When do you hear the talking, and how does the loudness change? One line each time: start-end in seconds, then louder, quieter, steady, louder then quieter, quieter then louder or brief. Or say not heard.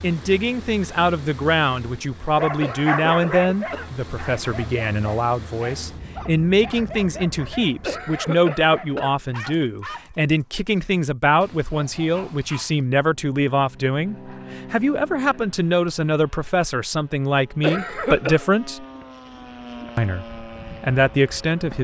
0.0-18.9 steady
19.9-21.7 brief.